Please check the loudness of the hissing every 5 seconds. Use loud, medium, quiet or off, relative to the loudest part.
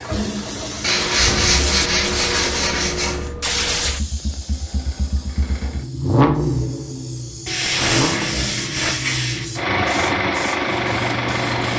loud, quiet, loud.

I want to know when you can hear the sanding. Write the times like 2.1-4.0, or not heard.
0.8-3.3, 7.5-9.4.